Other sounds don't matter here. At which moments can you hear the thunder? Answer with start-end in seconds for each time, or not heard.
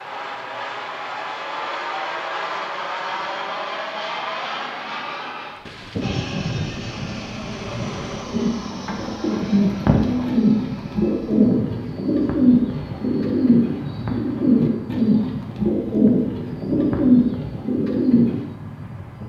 5.7-8.2.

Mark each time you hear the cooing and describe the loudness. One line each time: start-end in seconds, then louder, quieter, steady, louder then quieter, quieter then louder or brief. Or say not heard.
8.2-18.4 steady.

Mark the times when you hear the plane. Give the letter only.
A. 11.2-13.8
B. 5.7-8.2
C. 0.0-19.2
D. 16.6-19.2
C.